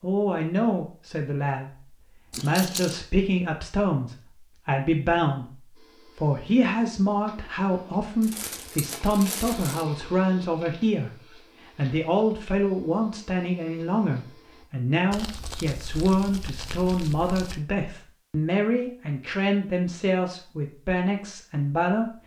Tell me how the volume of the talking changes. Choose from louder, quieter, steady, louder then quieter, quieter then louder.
steady.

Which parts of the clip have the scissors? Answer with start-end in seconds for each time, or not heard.
not heard.